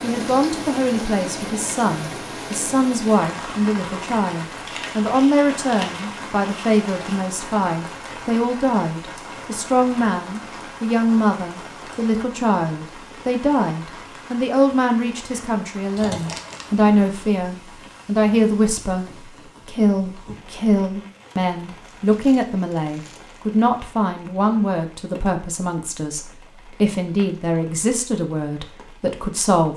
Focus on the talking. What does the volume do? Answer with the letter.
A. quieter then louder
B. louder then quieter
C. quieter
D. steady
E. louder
D.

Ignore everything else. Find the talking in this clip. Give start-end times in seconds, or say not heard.
0.0-29.7.